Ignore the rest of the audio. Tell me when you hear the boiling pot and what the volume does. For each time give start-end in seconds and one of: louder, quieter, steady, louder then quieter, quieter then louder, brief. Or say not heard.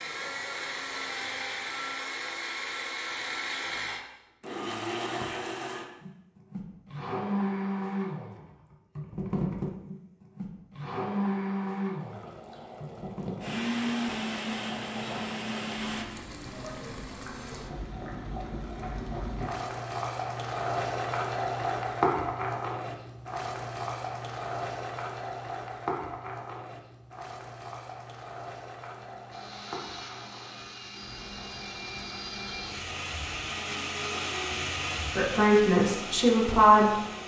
11.9-37.2 louder then quieter.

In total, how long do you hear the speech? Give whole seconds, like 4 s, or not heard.
2 s.